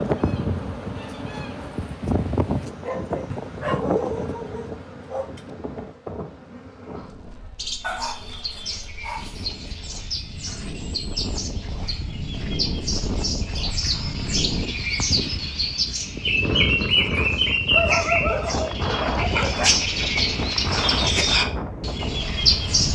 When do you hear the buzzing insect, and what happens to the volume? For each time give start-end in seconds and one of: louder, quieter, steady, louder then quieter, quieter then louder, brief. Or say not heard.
0.0-8.6 quieter.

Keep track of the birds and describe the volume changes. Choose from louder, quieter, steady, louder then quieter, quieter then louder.
louder.